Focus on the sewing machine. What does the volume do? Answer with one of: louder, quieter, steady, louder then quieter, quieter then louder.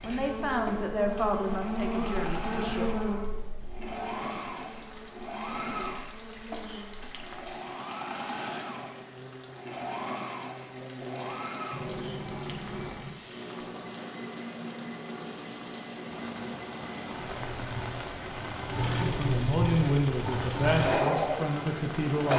louder.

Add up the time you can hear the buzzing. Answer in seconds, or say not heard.
14 s.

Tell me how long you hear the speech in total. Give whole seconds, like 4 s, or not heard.
6 s.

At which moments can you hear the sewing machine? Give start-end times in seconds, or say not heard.
0.0-22.3.